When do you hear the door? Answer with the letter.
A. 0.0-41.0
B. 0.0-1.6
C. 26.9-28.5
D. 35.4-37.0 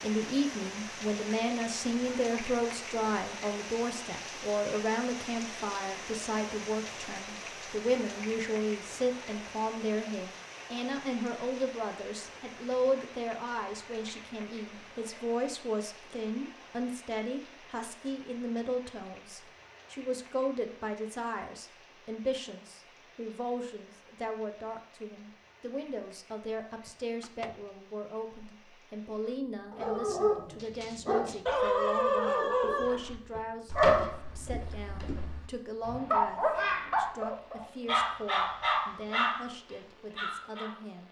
C.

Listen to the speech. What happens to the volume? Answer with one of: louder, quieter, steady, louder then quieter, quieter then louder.
quieter.